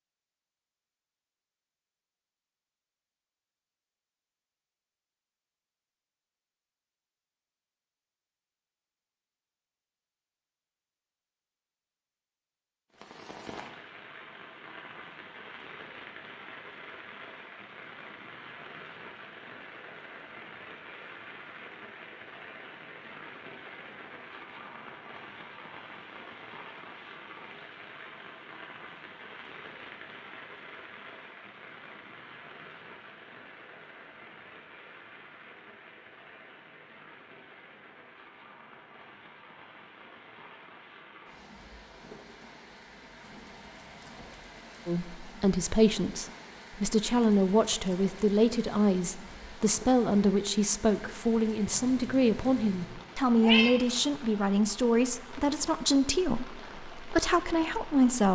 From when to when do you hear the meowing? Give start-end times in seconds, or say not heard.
51.7-53.7.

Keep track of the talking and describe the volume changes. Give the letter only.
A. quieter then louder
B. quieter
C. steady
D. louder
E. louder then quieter
C.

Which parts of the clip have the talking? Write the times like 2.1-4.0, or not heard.
44.9-58.3.